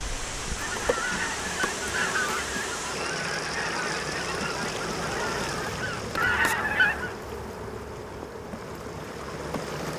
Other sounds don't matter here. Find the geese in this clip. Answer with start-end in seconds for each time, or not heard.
0.6-7.1.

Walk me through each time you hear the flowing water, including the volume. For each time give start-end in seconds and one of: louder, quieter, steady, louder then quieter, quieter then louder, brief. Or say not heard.
0.0-9.9 quieter.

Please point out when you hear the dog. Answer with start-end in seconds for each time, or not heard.
not heard.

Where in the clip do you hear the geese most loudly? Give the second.
7 s.